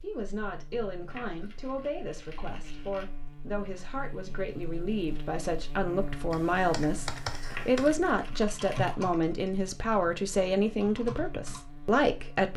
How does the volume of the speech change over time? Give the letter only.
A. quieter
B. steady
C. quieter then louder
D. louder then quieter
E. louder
E.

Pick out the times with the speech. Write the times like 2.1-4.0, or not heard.
0.0-12.5.